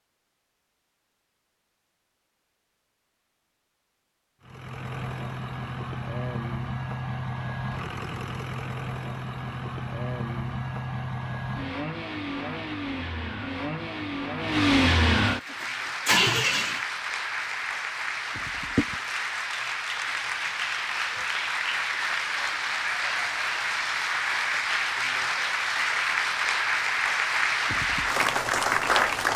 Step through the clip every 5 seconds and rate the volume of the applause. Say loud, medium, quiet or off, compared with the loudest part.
off, off, off, medium, loud, loud.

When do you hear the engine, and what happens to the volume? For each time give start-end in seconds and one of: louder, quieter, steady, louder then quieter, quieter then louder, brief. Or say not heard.
4.4-16.9 louder.